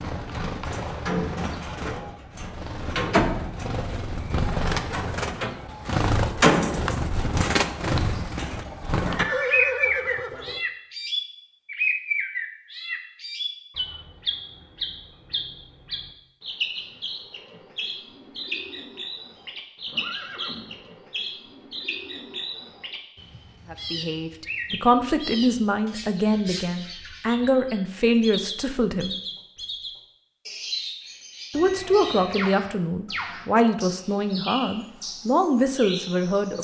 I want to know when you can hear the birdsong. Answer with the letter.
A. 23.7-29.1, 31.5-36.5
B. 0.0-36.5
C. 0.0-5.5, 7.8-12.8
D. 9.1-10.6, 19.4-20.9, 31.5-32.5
B.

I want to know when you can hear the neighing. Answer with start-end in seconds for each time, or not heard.
9.1-10.6, 19.4-20.9, 31.5-32.5.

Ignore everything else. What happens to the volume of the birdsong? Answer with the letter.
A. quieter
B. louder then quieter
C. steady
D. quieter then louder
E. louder
A.